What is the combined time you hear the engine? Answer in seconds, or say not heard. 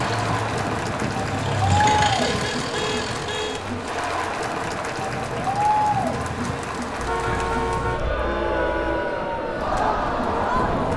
4 s.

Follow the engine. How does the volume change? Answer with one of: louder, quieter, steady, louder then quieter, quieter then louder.
louder then quieter.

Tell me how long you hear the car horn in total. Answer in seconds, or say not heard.
4 s.